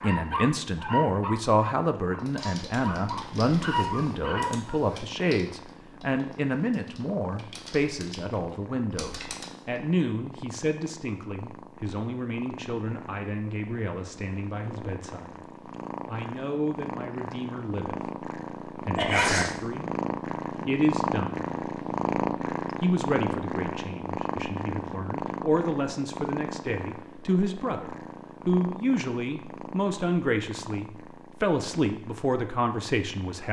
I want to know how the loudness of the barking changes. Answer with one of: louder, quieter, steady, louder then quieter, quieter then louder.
quieter then louder.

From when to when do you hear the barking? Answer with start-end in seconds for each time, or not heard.
0.0-5.0.